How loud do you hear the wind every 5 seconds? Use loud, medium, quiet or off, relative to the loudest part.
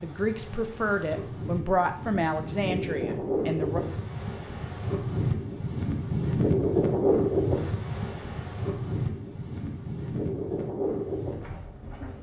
medium, loud, medium.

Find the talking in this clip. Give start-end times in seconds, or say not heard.
0.0-3.8.